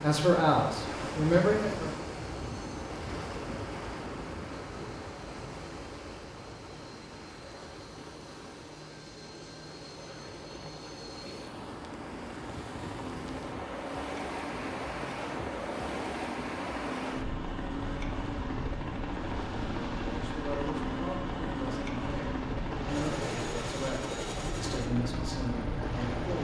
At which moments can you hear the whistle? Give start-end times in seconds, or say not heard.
not heard.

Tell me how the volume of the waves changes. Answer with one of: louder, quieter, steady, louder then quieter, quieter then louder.
quieter then louder.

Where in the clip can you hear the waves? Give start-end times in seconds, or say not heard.
0.0-26.3.